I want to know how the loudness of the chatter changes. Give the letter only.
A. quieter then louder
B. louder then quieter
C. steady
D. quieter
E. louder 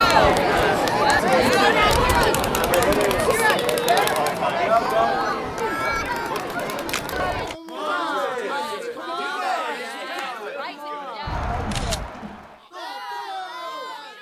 D.